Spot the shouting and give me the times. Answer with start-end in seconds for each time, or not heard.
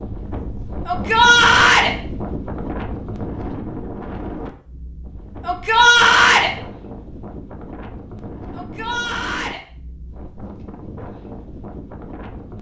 0.8-1.9, 5.5-6.5, 8.6-9.6.